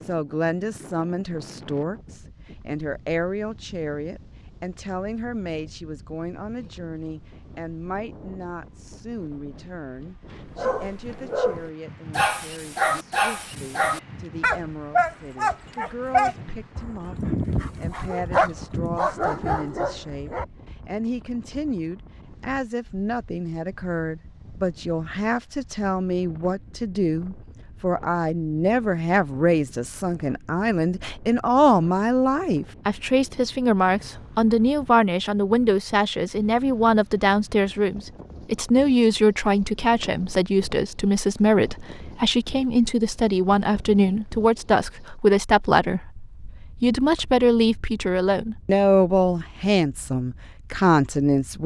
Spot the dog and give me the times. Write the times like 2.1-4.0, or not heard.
10.6-20.4.